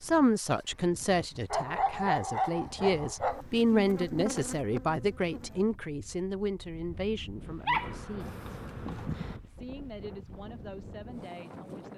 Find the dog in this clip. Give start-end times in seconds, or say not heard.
1.5-3.5, 7.5-9.4.